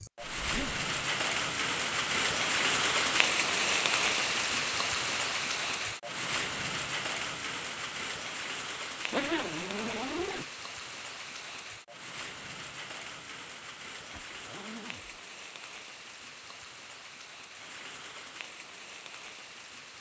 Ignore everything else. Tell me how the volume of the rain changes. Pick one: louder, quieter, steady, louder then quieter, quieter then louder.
quieter.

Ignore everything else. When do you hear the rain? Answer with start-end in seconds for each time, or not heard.
0.0-19.9.